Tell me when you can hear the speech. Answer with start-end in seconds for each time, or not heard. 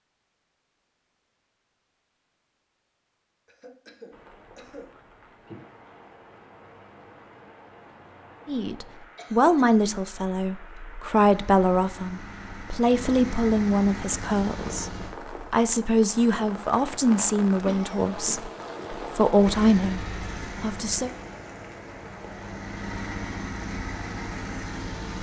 8.4-21.1.